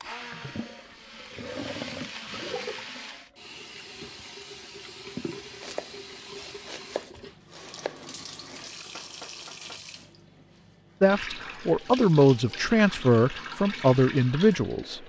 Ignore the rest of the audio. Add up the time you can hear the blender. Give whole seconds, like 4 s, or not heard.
3 s.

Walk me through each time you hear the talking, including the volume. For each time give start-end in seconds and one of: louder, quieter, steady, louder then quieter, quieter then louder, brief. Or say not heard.
11.0-15.0 steady.